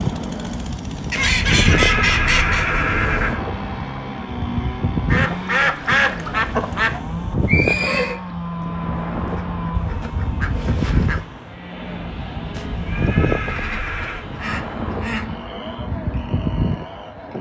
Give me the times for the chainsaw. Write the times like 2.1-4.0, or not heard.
0.0-17.3.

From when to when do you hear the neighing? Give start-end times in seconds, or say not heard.
1.1-3.4, 7.5-8.2, 12.5-14.2.